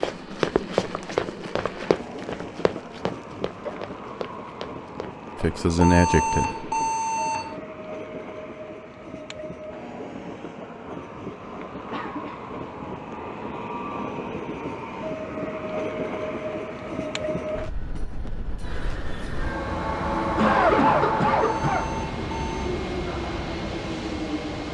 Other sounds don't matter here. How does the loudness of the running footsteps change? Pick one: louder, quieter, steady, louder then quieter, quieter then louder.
quieter.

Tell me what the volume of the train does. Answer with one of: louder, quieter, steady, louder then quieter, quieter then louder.
louder.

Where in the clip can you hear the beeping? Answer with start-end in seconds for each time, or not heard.
5.8-7.6, 21.4-22.8.